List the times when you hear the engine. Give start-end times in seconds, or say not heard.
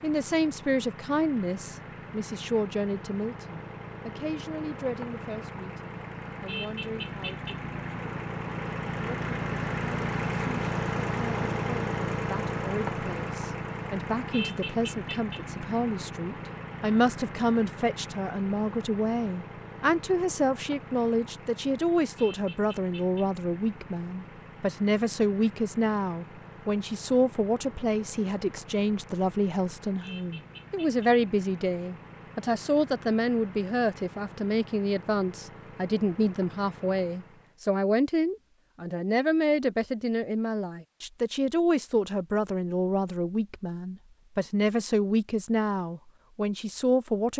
0.0-37.5.